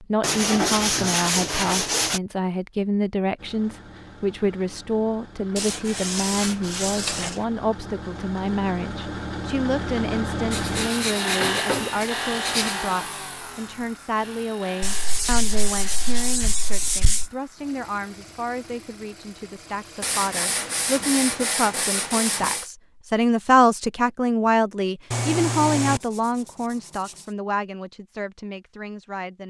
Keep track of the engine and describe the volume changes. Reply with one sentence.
The volume of the engine goes up, then down.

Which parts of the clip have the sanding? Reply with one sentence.
The sanding can be heard from 0.2 to 2.2 s, from 5.5 to 7.5 s, from 10.5 to 12.8 s, from 14.8 to 17.3 s, from 20.0 to 22.6 s and from 25.1 to 27.2 s.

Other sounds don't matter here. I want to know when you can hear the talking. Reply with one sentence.
You can hear the talking from 0.0 to 29.4 s.